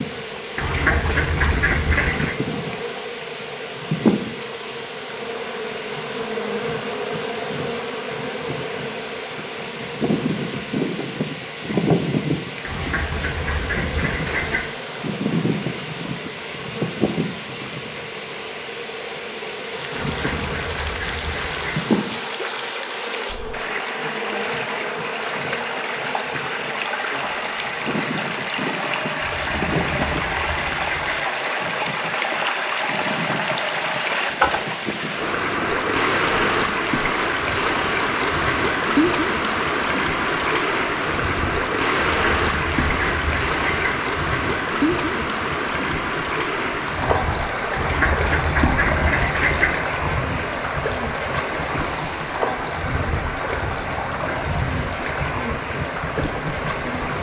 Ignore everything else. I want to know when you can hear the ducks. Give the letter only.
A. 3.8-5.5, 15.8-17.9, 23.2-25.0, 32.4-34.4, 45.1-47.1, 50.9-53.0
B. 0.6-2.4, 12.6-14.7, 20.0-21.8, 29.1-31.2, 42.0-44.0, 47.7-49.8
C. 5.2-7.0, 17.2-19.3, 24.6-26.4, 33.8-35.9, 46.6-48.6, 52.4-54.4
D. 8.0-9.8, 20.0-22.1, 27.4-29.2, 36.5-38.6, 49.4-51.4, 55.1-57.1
B.